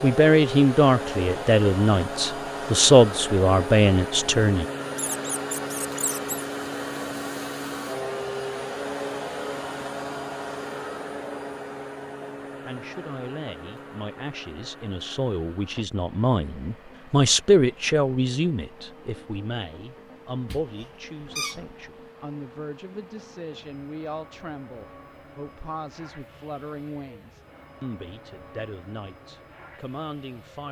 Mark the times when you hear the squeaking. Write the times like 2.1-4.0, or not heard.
5.0-6.4, 20.4-21.8.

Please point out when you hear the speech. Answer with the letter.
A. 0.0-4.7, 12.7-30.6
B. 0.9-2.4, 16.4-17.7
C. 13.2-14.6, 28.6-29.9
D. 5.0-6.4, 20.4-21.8
A.